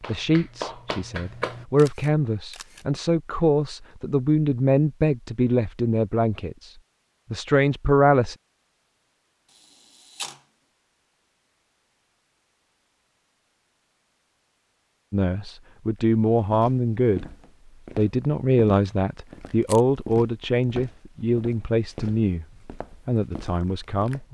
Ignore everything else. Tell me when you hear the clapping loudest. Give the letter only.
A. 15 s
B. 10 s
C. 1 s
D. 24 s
C.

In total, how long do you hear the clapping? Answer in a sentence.
The clapping can be heard for 2 seconds in total.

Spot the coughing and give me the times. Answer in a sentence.
You can't hear the coughing here.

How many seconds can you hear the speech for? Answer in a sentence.
The speech can be heard for 16 seconds in total.